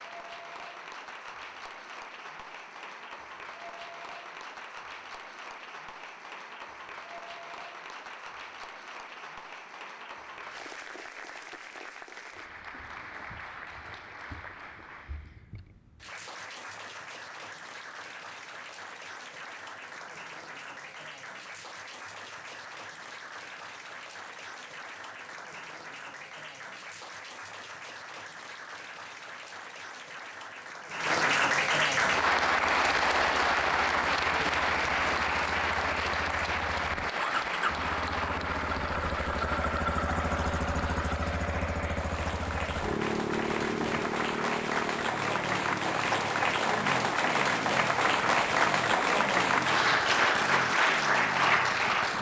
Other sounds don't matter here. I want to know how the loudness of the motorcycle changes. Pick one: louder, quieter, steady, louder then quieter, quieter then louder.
louder then quieter.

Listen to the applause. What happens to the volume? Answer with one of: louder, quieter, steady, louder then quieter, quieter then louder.
louder.